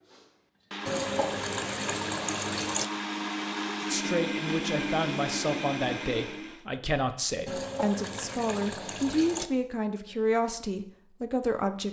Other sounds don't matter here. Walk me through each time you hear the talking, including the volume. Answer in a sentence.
You can hear the talking from 3.9 to 11.8 s, at a steady volume.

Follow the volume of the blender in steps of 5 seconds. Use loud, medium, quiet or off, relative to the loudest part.
loud, loud, off.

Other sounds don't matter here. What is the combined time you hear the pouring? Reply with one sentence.
The pouring can be heard for 4 seconds in total.